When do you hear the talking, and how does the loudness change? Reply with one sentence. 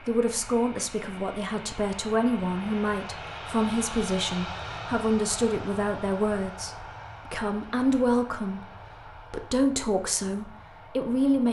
The talking can be heard from 0.0 to 11.4 s, at a steady volume.